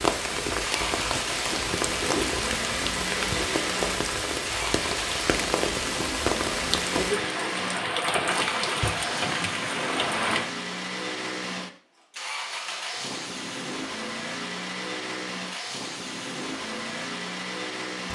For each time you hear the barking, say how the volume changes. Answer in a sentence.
You can't hear the barking here.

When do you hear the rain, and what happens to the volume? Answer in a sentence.
You can hear the rain from 0.0 to 10.5 s, at a steady volume.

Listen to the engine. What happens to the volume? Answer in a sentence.
The loudness of the engine stays about the same.